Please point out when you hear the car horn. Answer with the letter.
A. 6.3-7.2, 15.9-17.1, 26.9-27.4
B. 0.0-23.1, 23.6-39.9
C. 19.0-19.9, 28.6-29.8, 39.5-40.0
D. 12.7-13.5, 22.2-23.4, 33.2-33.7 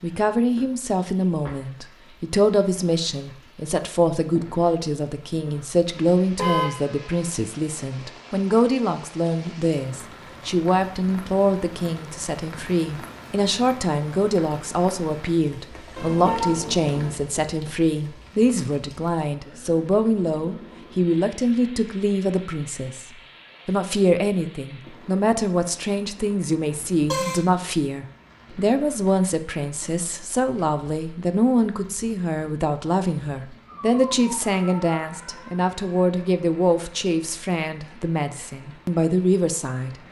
A.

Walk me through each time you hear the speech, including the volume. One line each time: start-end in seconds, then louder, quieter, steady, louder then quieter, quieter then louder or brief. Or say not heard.
0.0-23.1 steady
23.6-39.9 steady.